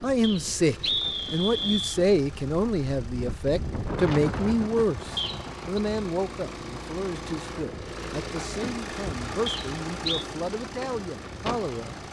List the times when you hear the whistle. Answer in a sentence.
The whistle can be heard from 0.2 to 2.0 s, from 5.2 to 5.7 s and from 9.4 to 10.2 s.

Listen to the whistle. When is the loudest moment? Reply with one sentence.
The volume of the whistle peaks at 1 second.